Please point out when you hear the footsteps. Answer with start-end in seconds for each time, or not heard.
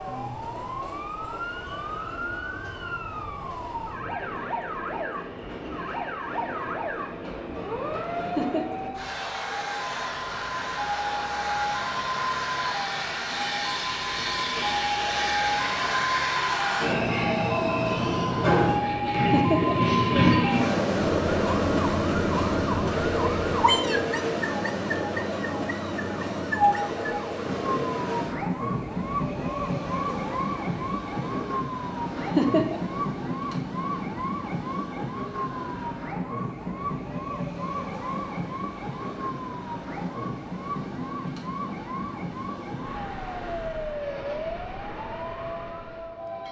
not heard.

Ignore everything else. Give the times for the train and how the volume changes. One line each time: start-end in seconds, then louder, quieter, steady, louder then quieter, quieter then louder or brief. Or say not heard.
0.0-46.4 louder then quieter.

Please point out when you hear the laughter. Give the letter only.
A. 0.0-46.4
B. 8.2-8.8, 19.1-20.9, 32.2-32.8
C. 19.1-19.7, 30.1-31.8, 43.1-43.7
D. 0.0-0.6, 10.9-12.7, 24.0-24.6
B.